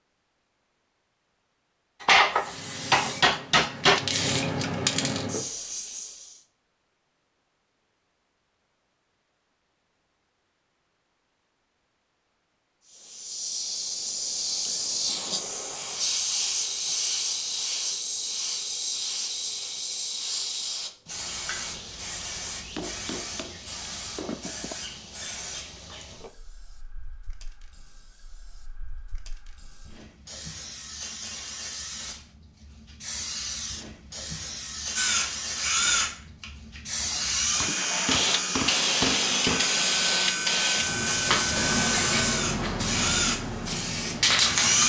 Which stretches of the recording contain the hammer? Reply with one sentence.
You can hear the hammer from 2.0 to 4.0 s, from 22.8 to 24.8 s and from 37.1 to 39.7 s.